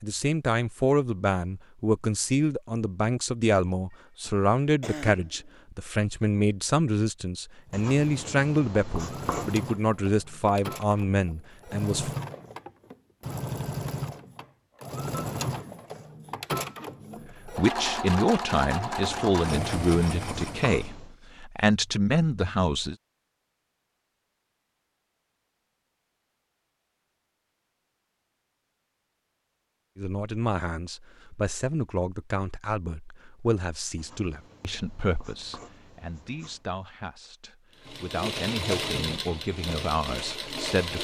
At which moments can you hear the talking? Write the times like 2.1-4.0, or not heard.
0.0-12.1, 17.4-22.9, 29.9-41.0.